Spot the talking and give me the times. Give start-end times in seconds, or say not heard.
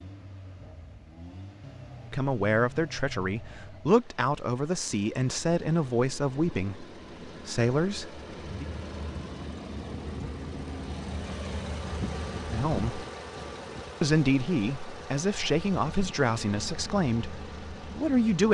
2.1-8.7, 12.5-13.1, 14.0-18.4.